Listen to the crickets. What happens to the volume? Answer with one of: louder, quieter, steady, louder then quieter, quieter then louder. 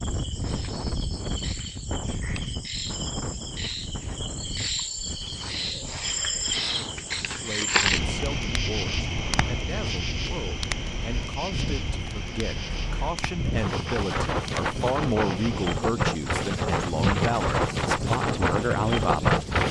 louder then quieter.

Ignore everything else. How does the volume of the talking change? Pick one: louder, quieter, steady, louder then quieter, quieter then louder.
louder.